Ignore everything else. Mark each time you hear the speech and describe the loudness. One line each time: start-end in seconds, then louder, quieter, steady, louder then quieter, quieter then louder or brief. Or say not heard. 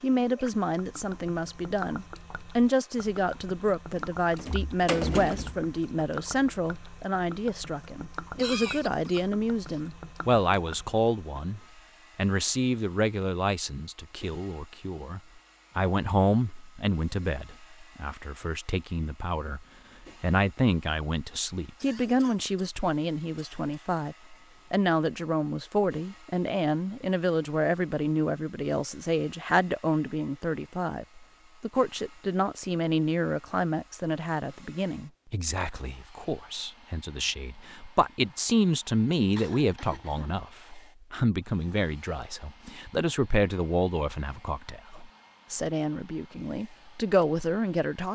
0.0-48.1 steady.